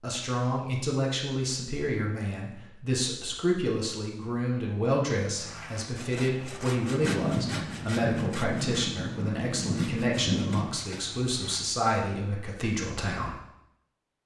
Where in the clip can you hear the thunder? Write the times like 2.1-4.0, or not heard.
7.0-10.8.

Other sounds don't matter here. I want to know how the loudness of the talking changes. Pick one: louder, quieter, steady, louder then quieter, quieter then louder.
steady.